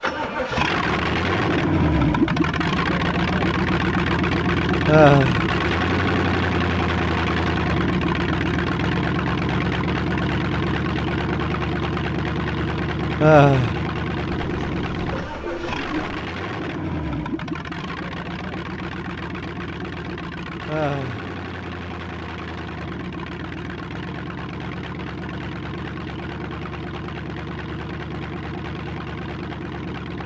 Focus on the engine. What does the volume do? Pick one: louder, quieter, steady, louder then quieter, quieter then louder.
quieter.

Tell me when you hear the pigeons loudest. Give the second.
16 s.